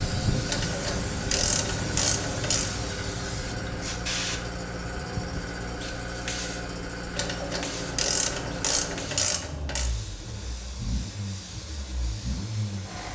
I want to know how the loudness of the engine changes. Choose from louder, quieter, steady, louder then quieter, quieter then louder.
steady.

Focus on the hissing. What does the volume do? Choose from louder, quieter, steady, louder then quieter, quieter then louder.
quieter.